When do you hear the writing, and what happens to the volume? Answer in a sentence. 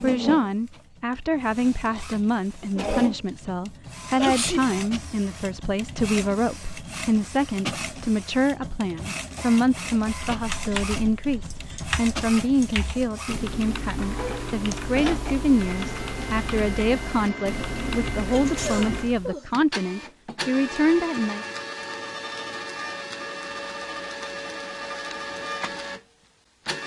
You can't hear the writing here.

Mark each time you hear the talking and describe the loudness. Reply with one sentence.
You can hear the talking from 0.0 to 21.4 s, at a steady volume.